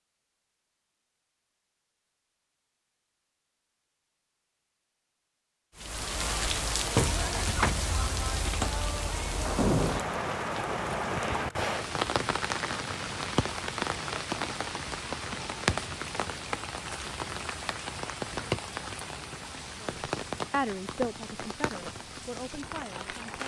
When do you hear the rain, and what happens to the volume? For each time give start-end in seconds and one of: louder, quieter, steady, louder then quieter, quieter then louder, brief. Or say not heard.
5.8-23.4 quieter.